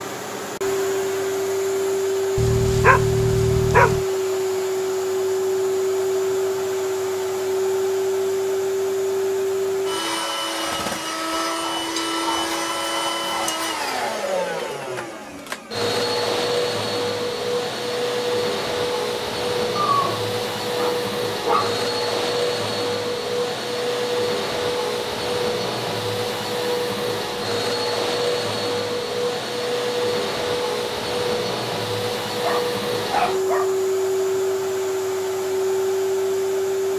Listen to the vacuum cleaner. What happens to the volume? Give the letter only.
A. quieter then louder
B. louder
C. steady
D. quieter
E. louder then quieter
C.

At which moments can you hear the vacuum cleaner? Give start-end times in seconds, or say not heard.
0.0-36.9.